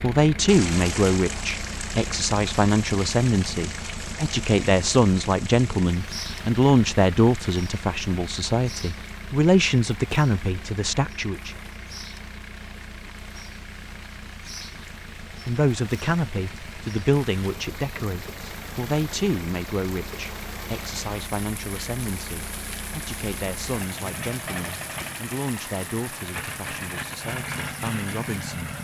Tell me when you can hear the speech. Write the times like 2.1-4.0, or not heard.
0.0-11.6, 15.4-28.7.